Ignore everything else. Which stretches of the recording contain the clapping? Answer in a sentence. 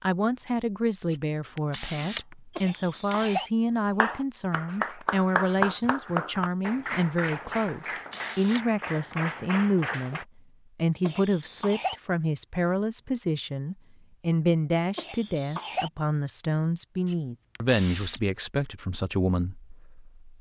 You can hear the clapping from 4.0 to 10.2 s.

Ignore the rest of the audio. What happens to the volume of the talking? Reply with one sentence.
The volume of the talking stays about the same.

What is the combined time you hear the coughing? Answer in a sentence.
You can hear the coughing for 3 seconds altogether.